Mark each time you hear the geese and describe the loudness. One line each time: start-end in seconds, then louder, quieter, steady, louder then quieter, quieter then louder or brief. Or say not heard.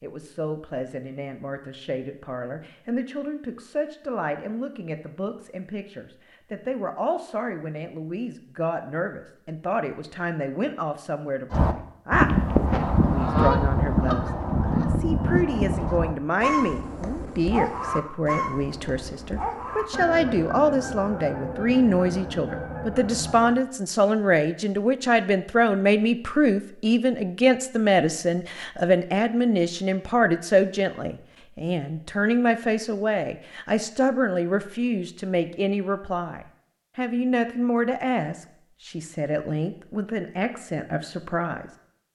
11.5-23.6 quieter.